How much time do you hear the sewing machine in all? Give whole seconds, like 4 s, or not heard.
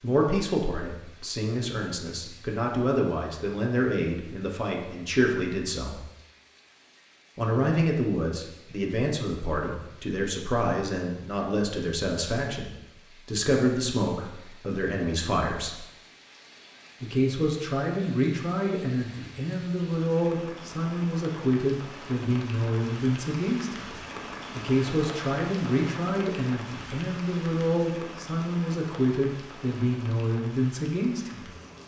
not heard.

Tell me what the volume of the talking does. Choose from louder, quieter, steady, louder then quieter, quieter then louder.
steady.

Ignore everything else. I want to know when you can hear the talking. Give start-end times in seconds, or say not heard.
0.0-6.0, 7.3-15.8, 17.0-23.9, 24.6-31.5.